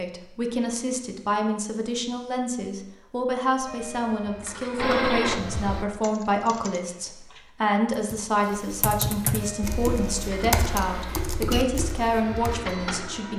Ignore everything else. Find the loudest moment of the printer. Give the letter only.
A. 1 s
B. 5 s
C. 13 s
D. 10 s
B.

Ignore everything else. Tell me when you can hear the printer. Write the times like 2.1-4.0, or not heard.
3.6-5.8, 9.3-13.3.